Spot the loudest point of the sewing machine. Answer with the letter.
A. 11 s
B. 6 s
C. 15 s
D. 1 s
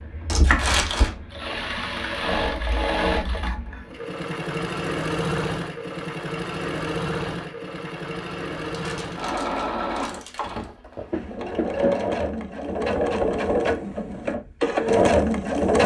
C.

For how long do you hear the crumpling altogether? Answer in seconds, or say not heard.
3 s.